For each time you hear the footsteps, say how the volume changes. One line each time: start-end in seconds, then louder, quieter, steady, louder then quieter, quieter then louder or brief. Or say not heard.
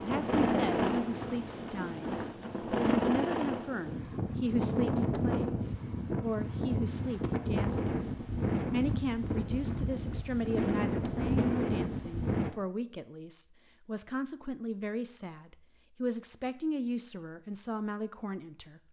not heard.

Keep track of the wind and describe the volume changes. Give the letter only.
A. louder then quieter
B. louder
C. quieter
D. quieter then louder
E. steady
E.